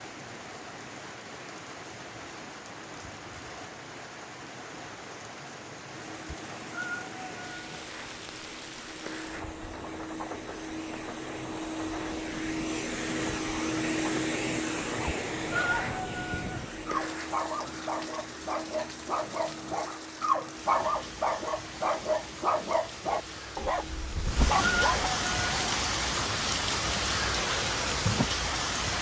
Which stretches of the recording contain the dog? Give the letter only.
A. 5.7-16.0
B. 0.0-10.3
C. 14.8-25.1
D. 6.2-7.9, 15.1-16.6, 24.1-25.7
C.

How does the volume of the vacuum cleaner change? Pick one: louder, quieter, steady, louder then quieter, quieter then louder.
louder then quieter.